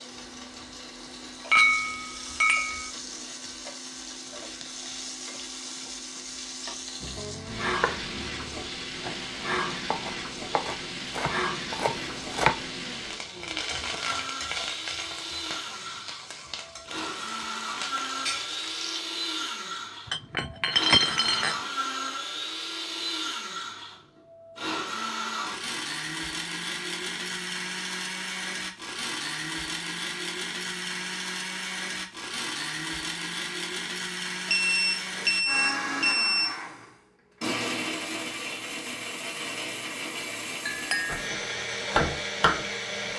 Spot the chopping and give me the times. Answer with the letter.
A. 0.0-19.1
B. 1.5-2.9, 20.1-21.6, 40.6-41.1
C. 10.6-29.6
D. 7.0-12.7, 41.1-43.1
D.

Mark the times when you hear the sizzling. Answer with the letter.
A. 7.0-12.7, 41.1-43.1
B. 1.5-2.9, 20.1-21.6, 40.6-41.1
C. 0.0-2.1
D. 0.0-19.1
D.